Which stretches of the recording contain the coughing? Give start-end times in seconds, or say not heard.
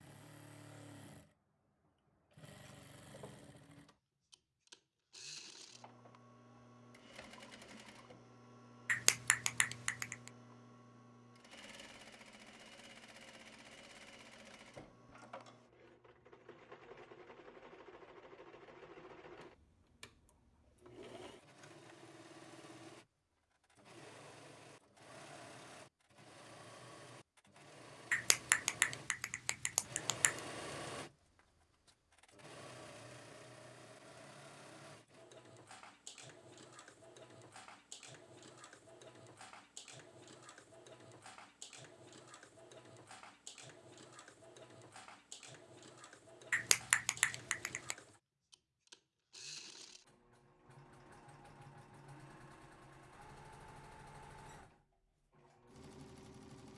not heard.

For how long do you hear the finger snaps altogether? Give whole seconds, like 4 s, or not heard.
5 s.